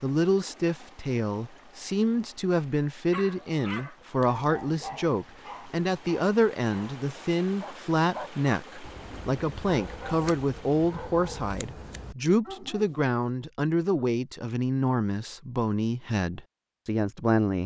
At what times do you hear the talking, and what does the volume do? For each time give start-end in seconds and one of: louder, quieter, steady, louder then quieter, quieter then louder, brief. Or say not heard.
0.0-17.6 steady.